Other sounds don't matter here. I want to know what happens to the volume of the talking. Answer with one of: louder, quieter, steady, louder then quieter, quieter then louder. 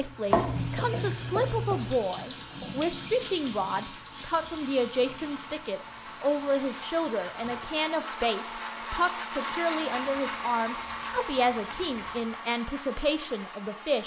steady.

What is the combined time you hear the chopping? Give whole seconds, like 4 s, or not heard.
2 s.